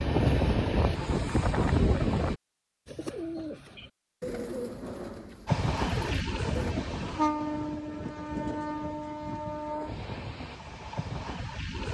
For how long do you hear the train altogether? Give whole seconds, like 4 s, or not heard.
9 s.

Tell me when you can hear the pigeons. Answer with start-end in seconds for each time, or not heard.
2.9-6.8.